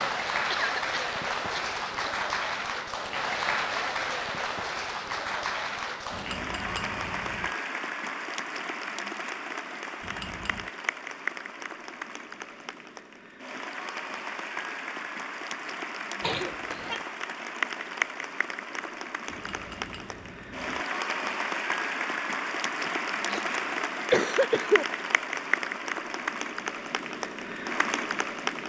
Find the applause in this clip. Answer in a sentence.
You can hear the applause from 0.0 to 28.6 s.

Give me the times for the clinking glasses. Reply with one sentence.
The clinking glasses can be heard from 6.1 to 7.5 s, from 10.0 to 10.7 s and from 19.2 to 20.9 s.